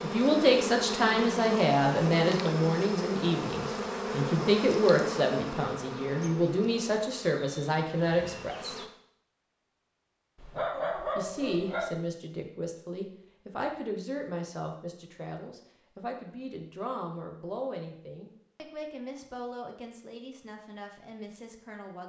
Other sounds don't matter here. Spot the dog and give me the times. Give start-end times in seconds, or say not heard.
10.3-11.9.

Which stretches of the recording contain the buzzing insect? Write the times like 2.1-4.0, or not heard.
0.0-8.9.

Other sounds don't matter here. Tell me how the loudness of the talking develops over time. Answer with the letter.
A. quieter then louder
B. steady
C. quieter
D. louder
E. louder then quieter
C.